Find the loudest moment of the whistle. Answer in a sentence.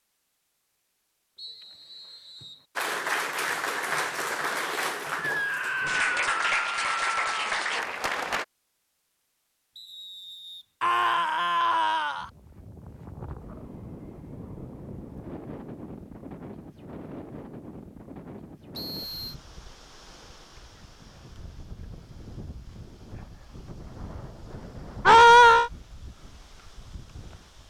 The volume of the whistle peaks at 19 seconds.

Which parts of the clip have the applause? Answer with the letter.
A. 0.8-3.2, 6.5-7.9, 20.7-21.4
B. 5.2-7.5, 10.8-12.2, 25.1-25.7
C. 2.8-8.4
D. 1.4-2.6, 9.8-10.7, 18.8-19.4
C.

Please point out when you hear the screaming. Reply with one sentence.
You can hear the screaming from 5.2 to 7.5 s, from 10.8 to 12.2 s and from 25.1 to 25.7 s.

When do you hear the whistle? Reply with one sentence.
The whistle can be heard from 1.4 to 2.6 s, from 9.8 to 10.7 s and from 18.8 to 19.4 s.